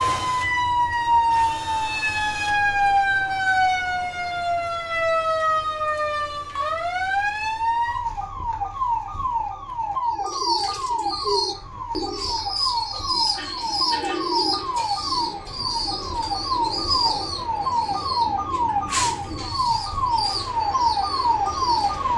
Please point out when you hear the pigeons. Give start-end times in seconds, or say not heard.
10.1-22.0.